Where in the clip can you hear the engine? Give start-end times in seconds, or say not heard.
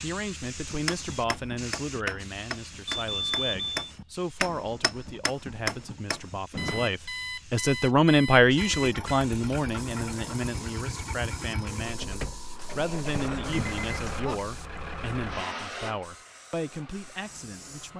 8.6-17.9.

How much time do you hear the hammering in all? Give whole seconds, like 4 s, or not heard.
6 s.